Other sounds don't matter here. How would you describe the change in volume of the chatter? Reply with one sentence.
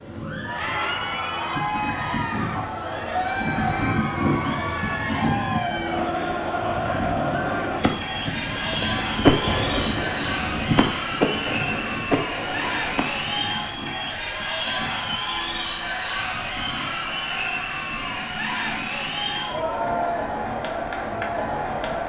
The loudness of the chatter stays about the same.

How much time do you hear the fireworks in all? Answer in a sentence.
The fireworks can be heard for 7 seconds in total.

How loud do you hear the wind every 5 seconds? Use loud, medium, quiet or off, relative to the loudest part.
loud, loud, medium, medium, medium.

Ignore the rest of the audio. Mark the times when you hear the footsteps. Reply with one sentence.
You can't hear the footsteps here.